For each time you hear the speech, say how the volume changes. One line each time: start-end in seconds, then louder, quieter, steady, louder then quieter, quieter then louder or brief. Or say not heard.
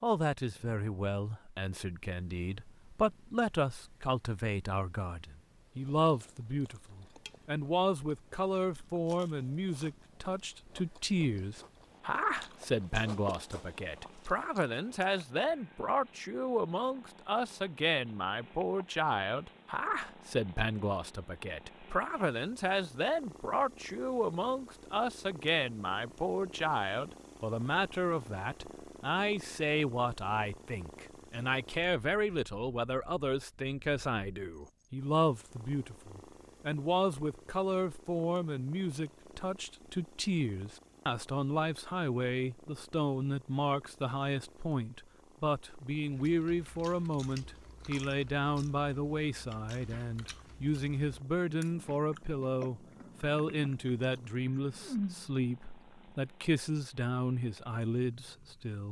0.0-58.8 steady.